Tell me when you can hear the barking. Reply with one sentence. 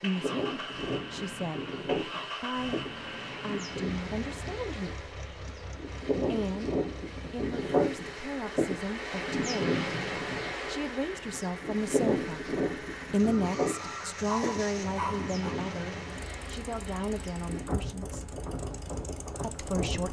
The barking can be heard from 13.8 to 15.6 s.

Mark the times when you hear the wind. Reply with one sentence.
The wind can be heard from 0.0 to 20.0 s.